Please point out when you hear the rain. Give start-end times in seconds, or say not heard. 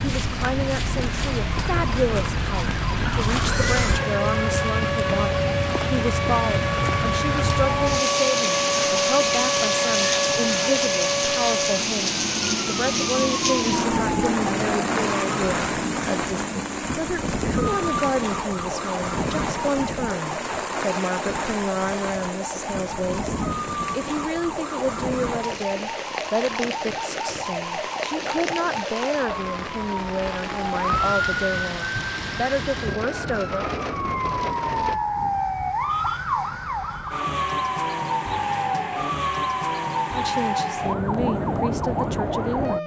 0.0-35.0.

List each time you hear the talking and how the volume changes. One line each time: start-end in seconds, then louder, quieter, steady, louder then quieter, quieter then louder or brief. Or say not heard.
0.0-33.6 steady
40.1-42.8 brief.